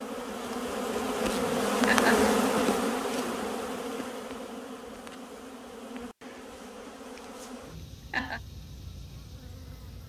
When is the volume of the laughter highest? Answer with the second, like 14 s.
2 s.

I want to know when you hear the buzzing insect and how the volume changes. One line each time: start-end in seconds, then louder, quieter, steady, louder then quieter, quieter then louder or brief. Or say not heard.
0.0-10.0 quieter.